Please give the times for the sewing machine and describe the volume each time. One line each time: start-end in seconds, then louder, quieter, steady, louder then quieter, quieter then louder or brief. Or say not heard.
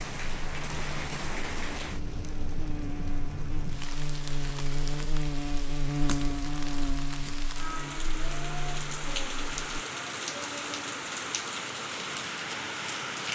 not heard.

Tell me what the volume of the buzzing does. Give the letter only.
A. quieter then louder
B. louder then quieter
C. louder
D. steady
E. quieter
B.